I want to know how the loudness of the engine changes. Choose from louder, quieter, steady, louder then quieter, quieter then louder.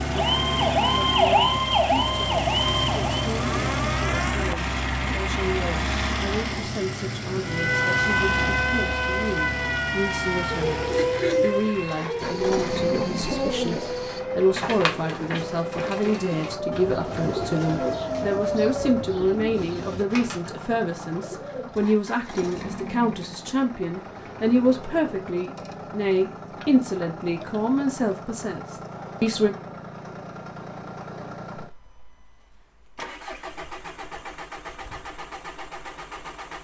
quieter.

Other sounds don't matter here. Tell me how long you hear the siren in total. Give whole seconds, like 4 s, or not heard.
16 s.